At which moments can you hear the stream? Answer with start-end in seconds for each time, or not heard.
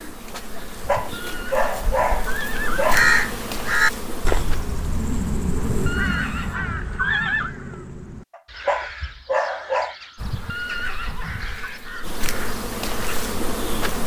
not heard.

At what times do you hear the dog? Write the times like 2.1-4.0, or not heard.
0.6-3.0, 8.3-9.9.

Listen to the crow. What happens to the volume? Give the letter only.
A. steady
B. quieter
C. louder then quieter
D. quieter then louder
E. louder
B.